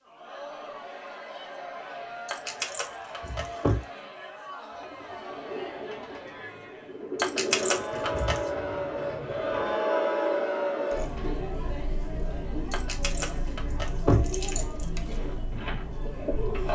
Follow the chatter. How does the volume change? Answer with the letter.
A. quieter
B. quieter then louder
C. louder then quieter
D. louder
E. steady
C.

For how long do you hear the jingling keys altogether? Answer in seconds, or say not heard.
5 s.